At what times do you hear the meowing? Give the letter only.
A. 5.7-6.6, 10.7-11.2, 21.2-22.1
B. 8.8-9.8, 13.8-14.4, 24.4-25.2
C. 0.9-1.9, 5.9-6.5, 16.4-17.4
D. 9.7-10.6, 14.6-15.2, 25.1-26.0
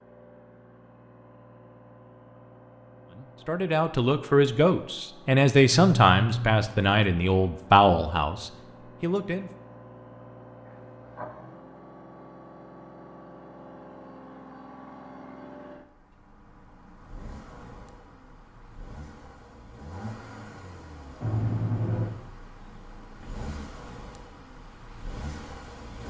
A.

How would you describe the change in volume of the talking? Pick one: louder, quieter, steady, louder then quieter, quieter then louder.
quieter.